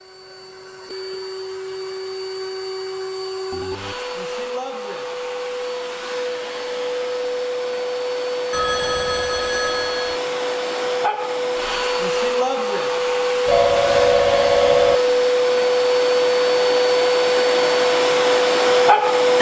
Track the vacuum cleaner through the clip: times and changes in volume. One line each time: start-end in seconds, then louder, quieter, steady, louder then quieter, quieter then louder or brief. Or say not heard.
0.0-19.3 louder.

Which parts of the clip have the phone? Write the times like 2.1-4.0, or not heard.
3.5-4.0, 8.5-10.2, 13.4-15.0.